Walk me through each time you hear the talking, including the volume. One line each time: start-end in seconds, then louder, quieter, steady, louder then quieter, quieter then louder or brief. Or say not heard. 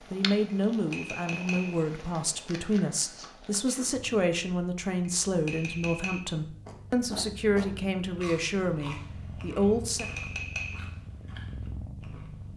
0.1-10.1 steady.